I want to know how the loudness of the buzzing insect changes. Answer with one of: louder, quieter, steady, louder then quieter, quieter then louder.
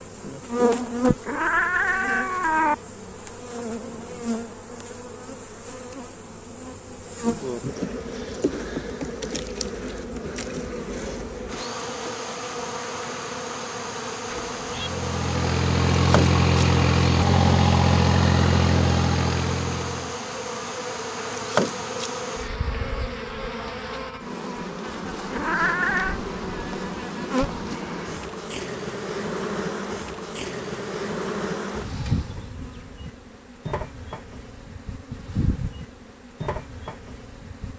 steady.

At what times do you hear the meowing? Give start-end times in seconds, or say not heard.
1.2-2.8, 14.3-14.9, 25.3-26.2.